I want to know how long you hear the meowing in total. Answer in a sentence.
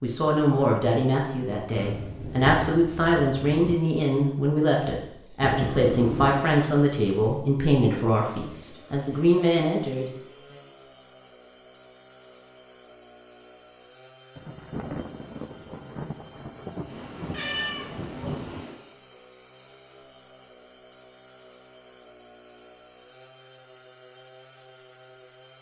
The meowing can be heard for 3 seconds in total.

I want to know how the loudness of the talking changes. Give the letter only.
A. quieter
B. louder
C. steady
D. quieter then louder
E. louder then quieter
C.